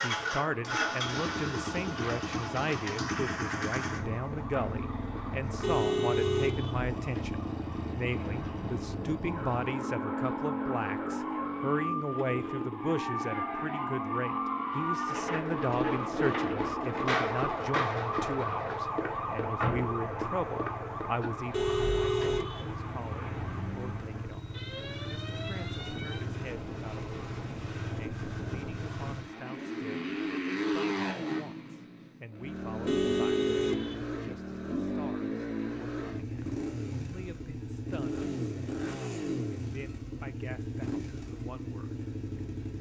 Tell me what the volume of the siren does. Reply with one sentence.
The loudness of the siren goes up, then down.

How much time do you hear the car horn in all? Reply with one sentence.
The car horn can be heard for 4 seconds in total.